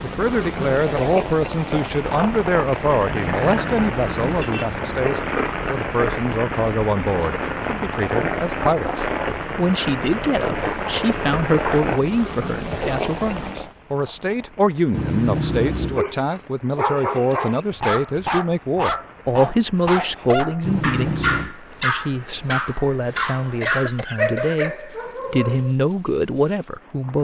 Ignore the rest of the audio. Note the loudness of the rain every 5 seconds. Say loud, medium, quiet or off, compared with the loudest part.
loud, loud, loud, quiet, quiet, quiet.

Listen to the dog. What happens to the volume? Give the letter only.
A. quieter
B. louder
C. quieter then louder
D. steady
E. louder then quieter
D.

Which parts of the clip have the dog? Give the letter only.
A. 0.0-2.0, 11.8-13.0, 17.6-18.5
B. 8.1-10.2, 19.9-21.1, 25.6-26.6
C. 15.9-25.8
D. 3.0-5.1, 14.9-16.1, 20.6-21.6
C.